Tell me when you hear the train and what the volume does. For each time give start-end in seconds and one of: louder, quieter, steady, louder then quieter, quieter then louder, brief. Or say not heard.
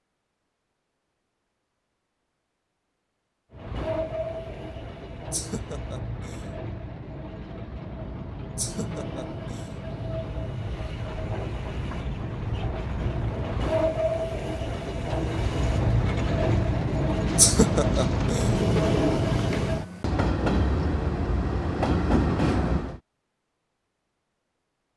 3.5-23.0 louder.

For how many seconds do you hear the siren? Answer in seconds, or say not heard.
not heard.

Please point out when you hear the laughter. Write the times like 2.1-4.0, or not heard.
5.3-6.5, 8.6-9.8, 17.4-18.6.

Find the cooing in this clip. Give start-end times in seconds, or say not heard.
17.2-19.8.